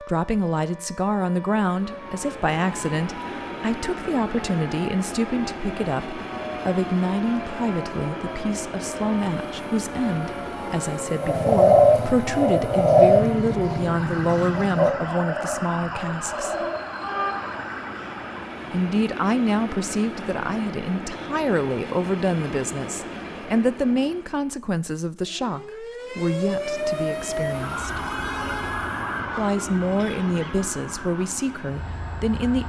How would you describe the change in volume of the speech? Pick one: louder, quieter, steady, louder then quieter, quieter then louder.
steady.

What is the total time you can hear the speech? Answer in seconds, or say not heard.
29 s.